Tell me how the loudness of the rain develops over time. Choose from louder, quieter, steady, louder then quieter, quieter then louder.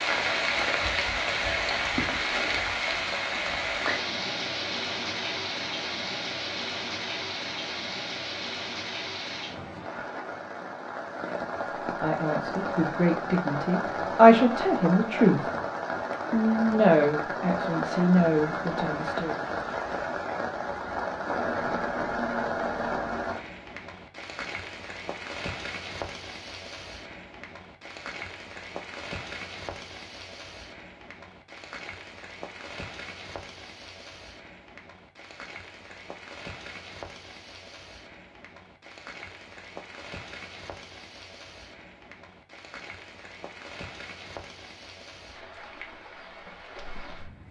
quieter.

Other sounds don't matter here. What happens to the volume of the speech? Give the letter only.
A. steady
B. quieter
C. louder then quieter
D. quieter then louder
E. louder
C.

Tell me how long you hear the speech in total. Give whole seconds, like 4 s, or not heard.
7 s.